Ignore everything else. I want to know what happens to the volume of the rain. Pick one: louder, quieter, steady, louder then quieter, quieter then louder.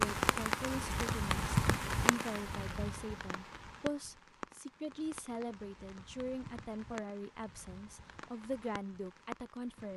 quieter.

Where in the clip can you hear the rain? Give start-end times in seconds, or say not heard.
0.0-9.9.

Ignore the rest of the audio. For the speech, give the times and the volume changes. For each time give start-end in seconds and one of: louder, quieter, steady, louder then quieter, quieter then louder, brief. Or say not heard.
0.0-9.9 steady.